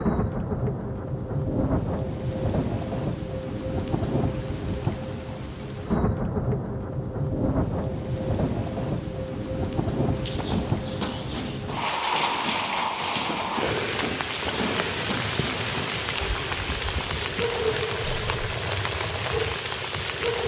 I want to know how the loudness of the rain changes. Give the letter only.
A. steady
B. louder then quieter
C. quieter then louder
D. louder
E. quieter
A.